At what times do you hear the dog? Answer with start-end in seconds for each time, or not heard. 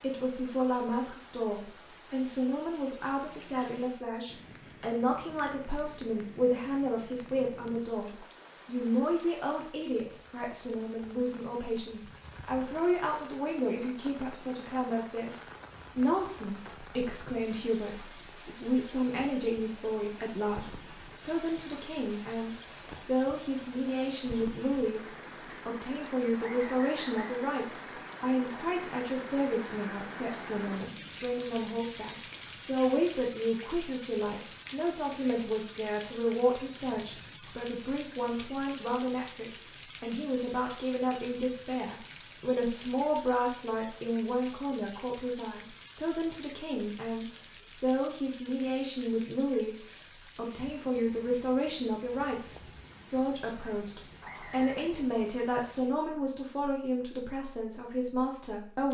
not heard.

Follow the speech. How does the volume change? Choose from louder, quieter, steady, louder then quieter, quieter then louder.
steady.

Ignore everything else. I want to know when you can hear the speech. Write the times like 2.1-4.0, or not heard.
0.0-58.9.